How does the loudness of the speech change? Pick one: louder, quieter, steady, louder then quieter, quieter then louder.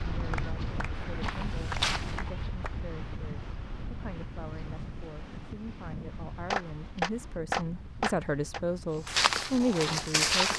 louder.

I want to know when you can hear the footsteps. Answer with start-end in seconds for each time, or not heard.
0.0-2.5, 9.1-10.5.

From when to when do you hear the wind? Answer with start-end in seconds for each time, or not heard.
0.0-10.5.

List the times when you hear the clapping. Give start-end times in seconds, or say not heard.
0.3-2.7, 6.5-8.6.